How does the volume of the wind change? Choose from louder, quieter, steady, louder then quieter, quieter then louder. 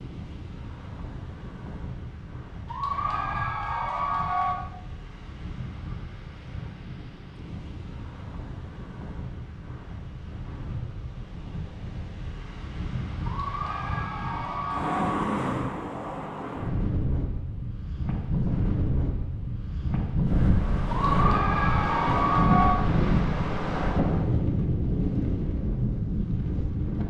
louder.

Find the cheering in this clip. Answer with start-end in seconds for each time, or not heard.
2.6-4.5, 13.2-15.1, 20.9-22.8.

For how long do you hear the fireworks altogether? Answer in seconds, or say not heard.
not heard.